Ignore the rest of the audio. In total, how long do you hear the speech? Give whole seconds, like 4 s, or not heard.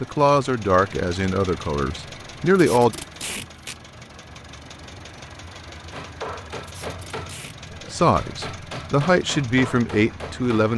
6 s.